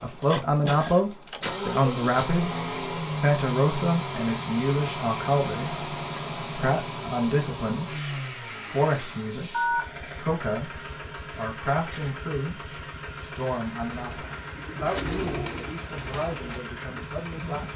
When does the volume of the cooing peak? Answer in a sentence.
The volume of the cooing peaks at 15 seconds.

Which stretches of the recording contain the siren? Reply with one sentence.
You can't hear the siren here.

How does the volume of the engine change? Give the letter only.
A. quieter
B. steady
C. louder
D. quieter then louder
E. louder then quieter
A.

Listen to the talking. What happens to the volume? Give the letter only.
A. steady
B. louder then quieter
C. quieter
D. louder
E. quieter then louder
C.